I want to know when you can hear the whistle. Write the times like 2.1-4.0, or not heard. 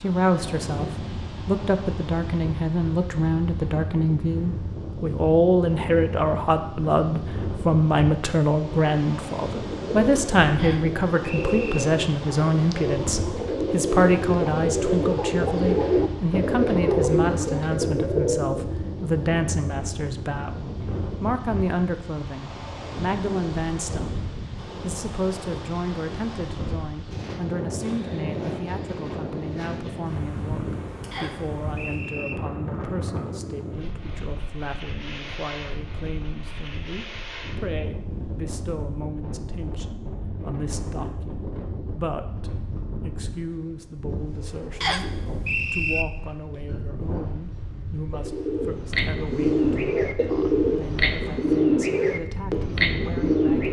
10.6-11.8, 31.1-32.4, 44.8-46.0.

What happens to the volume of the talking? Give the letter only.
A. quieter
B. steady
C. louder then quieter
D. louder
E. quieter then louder
A.